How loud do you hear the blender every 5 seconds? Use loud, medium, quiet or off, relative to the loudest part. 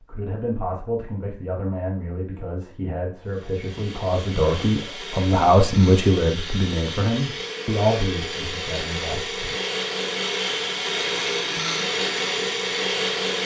quiet, medium, loud.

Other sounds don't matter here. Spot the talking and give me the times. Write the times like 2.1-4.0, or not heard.
0.0-9.6.